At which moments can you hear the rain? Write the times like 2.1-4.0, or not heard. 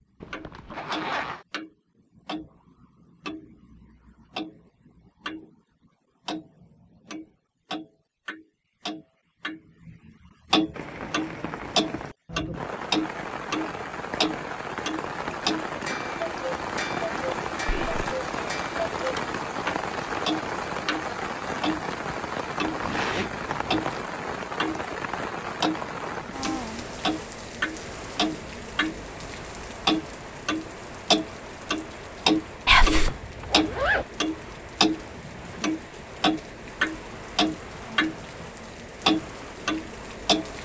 10.7-40.6.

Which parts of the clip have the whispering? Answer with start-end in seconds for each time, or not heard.
17.6-18.1, 32.6-33.1.